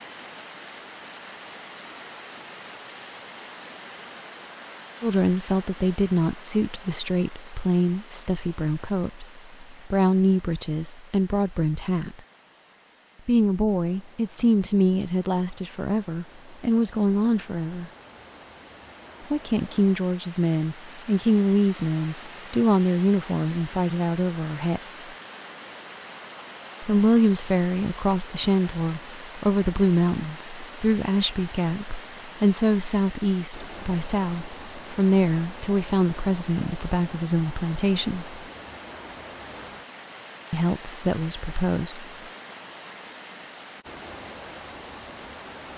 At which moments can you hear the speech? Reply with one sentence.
The speech can be heard from 5.0 to 12.2 s, from 13.2 to 17.9 s, from 19.3 to 25.1 s, from 26.8 to 38.4 s and from 40.5 to 42.0 s.